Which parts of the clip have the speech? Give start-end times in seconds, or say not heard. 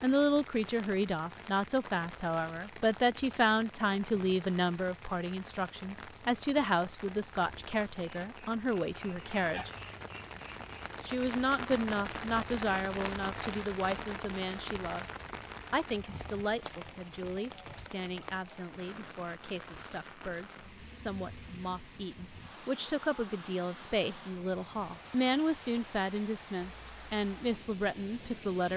0.0-9.7, 11.1-15.1, 15.7-28.7.